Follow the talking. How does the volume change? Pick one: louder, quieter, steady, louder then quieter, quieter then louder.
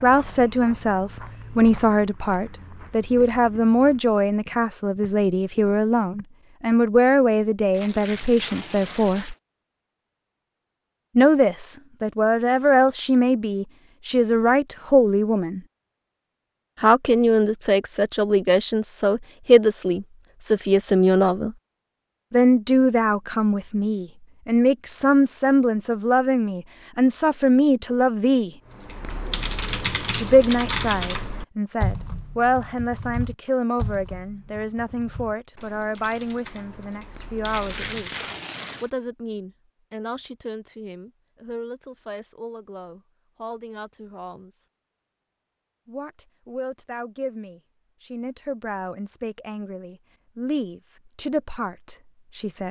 quieter.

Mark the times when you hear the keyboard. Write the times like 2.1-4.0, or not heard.
28.6-38.3.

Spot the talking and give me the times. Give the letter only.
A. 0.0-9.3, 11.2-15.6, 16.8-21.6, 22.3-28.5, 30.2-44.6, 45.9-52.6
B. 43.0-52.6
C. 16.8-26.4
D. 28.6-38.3
A.